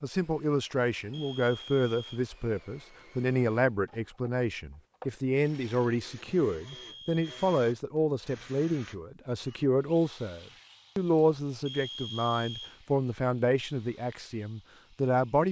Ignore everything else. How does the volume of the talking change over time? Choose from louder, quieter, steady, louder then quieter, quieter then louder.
steady.